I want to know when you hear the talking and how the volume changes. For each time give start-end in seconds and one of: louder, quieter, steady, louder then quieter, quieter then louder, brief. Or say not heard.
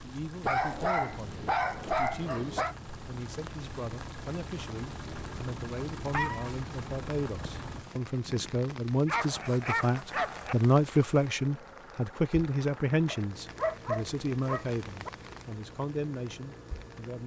0.0-17.2 louder then quieter.